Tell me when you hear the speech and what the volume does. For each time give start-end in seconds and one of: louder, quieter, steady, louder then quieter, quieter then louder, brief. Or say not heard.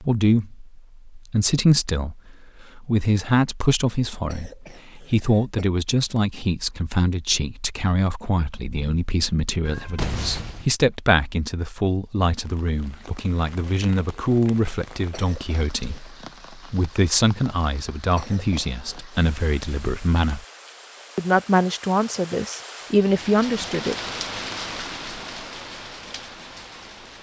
0.0-20.4 steady
21.1-23.9 brief.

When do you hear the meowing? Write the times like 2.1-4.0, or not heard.
9.7-10.7.